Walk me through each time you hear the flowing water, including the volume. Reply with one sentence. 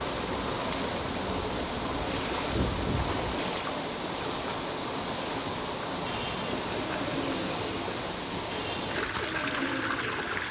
The flowing water can be heard from 0.0 to 10.4 s, at a steady volume.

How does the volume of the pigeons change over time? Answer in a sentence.
The loudness of the pigeons stays about the same.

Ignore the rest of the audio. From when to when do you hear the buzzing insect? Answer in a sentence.
You can hear the buzzing insect from 0.1 to 3.4 s.